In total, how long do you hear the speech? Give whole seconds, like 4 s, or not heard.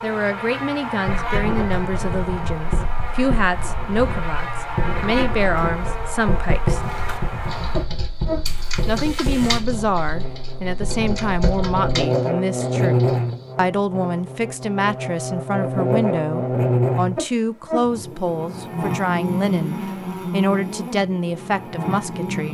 20 s.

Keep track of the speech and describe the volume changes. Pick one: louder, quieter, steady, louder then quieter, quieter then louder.
steady.